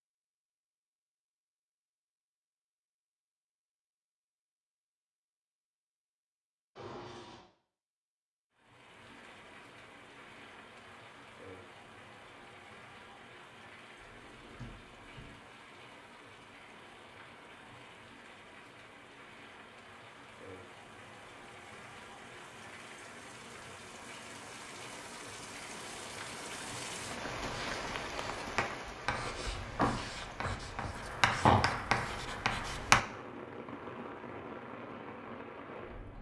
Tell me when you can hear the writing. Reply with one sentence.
You can hear the writing from 27.3 to 33.0 s.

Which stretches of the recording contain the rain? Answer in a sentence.
You can hear the rain from 8.5 to 36.1 s.